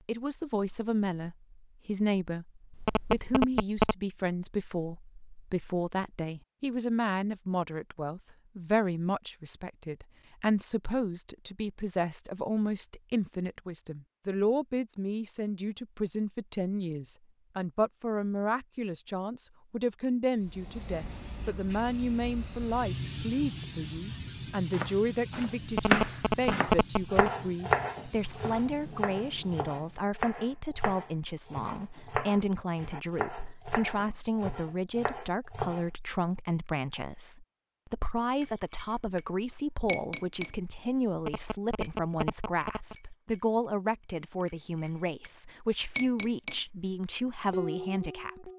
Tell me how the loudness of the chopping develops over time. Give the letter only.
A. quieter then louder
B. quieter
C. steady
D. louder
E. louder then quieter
B.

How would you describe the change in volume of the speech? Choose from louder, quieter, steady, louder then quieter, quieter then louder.
steady.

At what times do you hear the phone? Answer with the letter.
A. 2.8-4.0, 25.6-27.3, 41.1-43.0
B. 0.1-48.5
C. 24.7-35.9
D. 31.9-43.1
A.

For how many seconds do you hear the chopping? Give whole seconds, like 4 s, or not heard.
11 s.